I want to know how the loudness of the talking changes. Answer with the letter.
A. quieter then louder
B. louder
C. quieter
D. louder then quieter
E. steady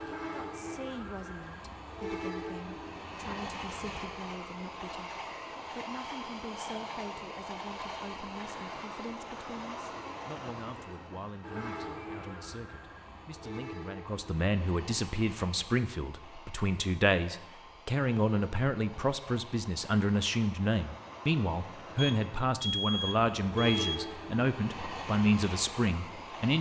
B.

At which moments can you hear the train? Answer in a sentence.
You can hear the train from 0.0 to 26.5 s.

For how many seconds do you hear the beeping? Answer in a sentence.
The beeping can be heard for 2 seconds in total.